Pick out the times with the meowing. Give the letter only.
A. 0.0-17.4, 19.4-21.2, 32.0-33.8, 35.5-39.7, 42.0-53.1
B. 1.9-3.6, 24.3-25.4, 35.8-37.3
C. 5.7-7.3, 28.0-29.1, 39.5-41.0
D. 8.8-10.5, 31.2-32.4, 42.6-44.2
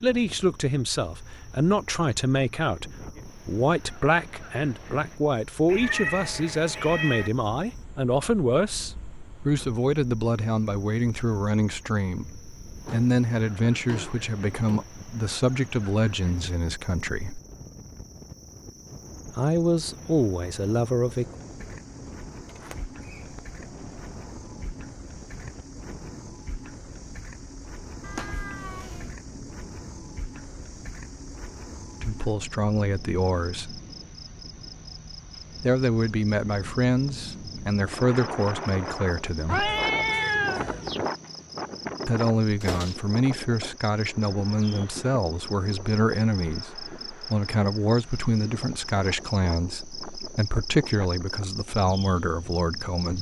C.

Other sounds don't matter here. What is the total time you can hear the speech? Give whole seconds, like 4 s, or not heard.
36 s.